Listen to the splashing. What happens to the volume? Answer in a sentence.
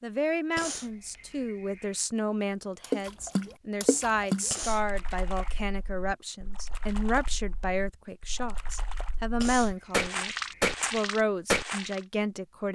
The volume of the splashing goes down, then up.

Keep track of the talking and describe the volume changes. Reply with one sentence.
The loudness of the talking stays about the same.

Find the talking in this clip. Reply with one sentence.
The talking can be heard from 0.0 to 12.7 s.